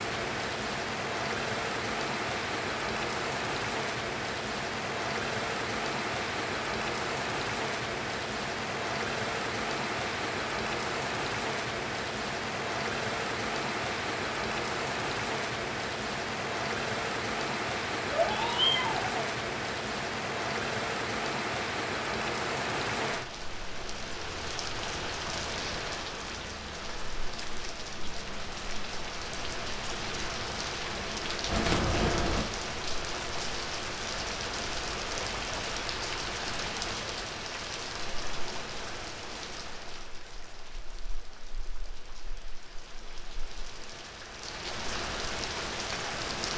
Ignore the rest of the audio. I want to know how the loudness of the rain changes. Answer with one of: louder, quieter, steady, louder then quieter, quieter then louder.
quieter.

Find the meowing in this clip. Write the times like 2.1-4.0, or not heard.
18.1-19.2, 31.4-32.5.